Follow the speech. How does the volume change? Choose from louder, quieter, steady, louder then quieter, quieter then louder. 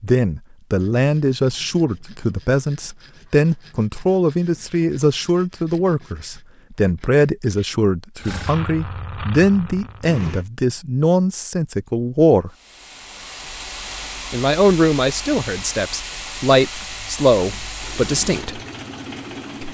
steady.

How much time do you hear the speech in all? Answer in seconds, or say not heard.
17 s.